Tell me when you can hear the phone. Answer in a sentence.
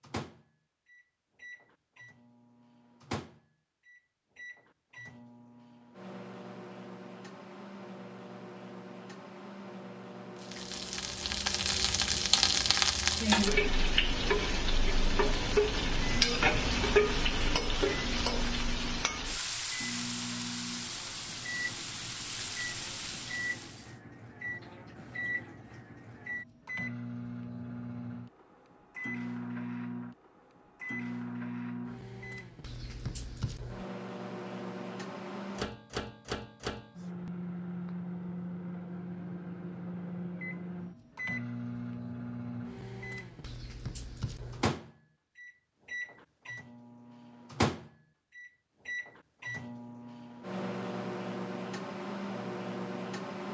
You can't hear the phone here.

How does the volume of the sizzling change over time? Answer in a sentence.
The loudness of the sizzling goes down.